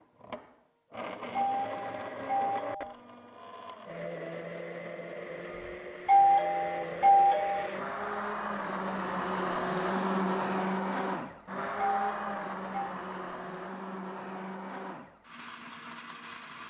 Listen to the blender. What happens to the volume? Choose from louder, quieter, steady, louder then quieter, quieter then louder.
louder then quieter.